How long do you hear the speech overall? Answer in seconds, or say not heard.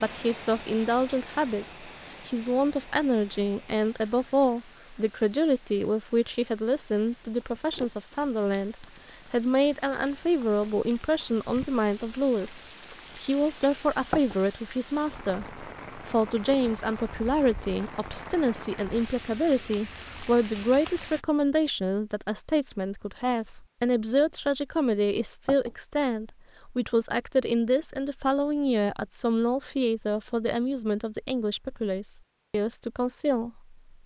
34 s.